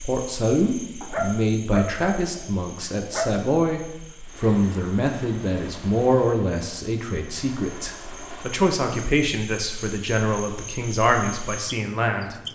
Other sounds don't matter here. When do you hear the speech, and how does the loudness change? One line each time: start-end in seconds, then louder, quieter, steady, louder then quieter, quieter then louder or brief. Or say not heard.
0.0-12.4 steady.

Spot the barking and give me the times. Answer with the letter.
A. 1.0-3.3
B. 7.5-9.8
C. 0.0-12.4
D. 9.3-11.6
A.